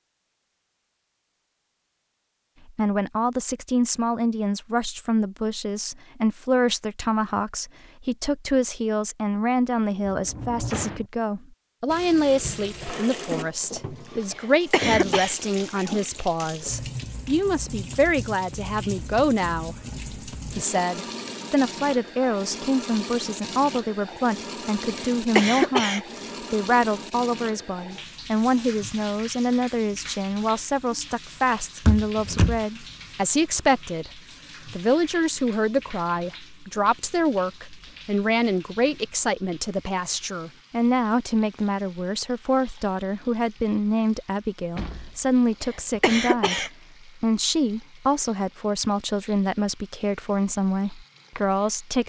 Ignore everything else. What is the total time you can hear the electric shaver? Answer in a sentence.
You can't hear the electric shaver here.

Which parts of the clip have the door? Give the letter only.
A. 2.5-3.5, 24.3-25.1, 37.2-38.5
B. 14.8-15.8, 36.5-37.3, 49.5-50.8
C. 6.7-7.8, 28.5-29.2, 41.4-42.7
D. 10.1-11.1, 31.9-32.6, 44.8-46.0
D.